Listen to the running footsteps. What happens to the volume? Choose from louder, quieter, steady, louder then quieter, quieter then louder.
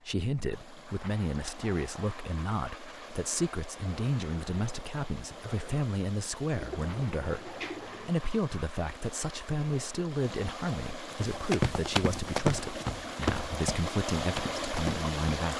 quieter.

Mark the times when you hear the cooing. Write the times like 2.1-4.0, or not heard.
6.5-8.1.